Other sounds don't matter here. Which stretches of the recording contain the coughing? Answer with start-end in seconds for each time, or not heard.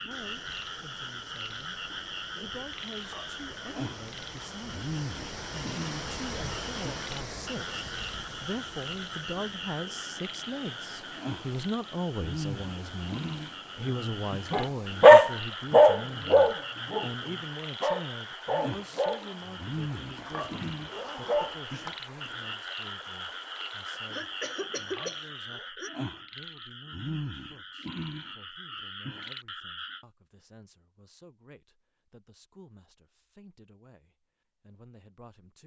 23.9-25.9.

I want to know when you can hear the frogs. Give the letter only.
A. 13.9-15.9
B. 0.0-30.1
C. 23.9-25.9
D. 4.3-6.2
B.